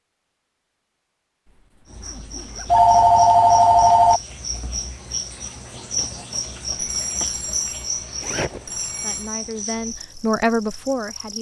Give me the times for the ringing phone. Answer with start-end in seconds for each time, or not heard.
2.6-4.2, 6.8-9.3.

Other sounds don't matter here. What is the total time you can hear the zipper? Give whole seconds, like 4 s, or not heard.
2 s.